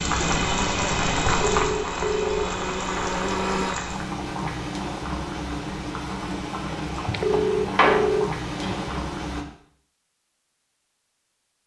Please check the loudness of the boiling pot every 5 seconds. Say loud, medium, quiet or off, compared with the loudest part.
loud, loud, off.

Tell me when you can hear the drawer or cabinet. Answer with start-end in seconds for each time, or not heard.
7.3-9.0.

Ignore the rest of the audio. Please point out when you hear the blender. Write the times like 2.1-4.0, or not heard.
0.2-3.8.